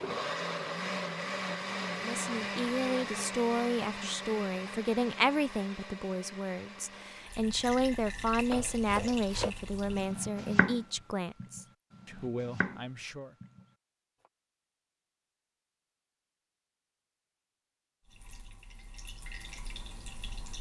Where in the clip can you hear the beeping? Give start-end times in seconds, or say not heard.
not heard.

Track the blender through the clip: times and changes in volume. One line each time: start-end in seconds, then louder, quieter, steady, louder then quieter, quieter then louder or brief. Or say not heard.
0.0-7.5 quieter.